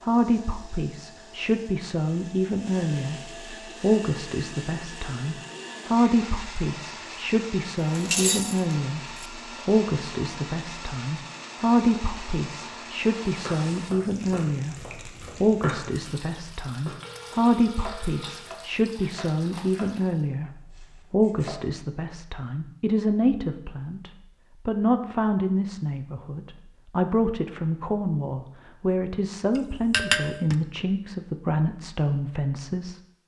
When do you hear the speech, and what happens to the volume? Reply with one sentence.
You can hear the speech from 0.0 to 33.0 s, at a steady volume.